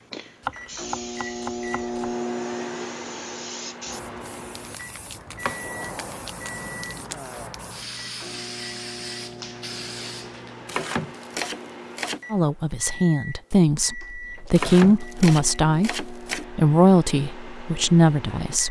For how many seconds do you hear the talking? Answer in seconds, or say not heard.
6 s.